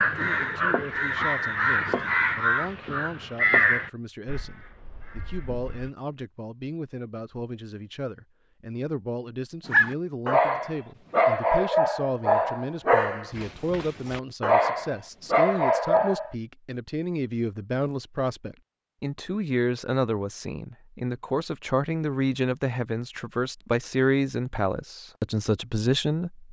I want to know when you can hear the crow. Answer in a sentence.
The crow can be heard from 0.0 to 5.9 s.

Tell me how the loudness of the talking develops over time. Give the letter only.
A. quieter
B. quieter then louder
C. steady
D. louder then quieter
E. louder
E.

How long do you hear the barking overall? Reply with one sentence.
The barking can be heard for 7 seconds in total.